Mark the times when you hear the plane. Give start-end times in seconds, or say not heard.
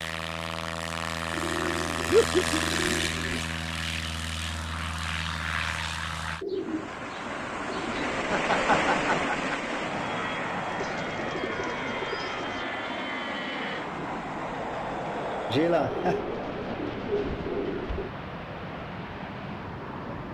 0.0-6.5, 9.8-20.3.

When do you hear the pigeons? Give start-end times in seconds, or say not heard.
1.3-3.4, 6.4-8.2, 10.7-12.7, 15.9-18.1.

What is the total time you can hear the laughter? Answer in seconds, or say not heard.
3 s.